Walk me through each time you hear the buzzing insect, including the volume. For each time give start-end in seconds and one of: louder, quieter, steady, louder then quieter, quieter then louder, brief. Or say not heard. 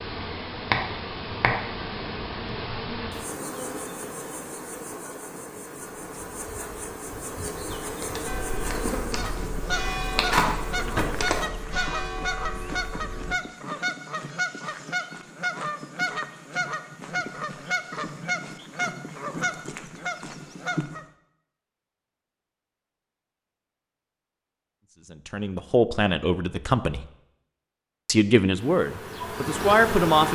0.0-11.5 quieter then louder
28.6-30.3 brief.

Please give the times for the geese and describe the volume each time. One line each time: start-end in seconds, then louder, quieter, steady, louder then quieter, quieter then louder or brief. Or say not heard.
9.1-21.1 steady.